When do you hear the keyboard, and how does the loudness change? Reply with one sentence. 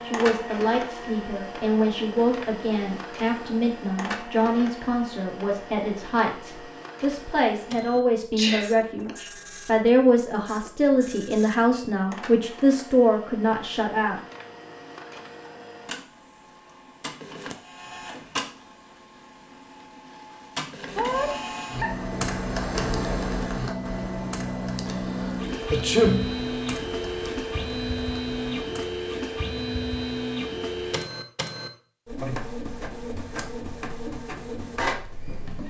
You can hear the keyboard from 21.1 to 29.0 s, getting quieter.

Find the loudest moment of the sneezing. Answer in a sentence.
The loudest moment of the sneezing is at 26 seconds.